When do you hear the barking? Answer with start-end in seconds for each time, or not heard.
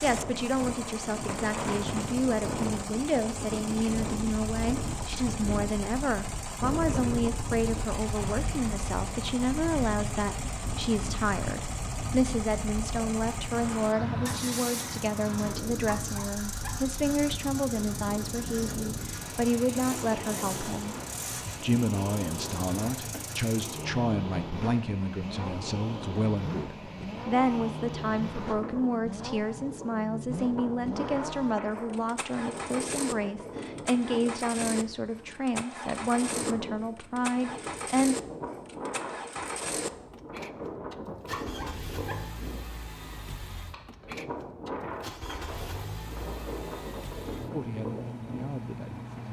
15.8-16.8, 41.2-42.2.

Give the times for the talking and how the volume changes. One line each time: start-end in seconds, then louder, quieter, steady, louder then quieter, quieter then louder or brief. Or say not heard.
0.0-38.1 steady
47.5-49.2 brief.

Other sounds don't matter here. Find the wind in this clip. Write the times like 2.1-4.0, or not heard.
0.0-49.2.